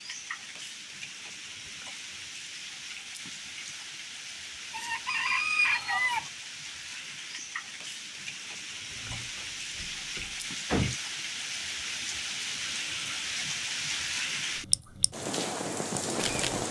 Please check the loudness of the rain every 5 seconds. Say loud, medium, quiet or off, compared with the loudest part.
medium, medium, loud, loud.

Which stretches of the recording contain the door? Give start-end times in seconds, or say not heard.
8.9-10.9.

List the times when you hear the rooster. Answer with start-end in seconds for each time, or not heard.
4.7-6.2.